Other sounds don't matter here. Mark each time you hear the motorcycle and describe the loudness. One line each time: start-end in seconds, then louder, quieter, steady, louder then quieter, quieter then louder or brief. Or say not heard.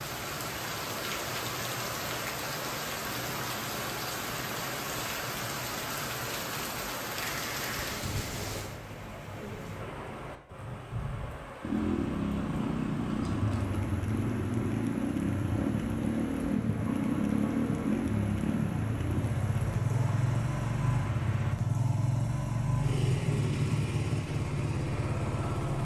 11.6-25.7 steady.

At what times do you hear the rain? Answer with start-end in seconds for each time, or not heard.
0.0-21.6.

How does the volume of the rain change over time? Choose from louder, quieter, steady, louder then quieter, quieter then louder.
quieter.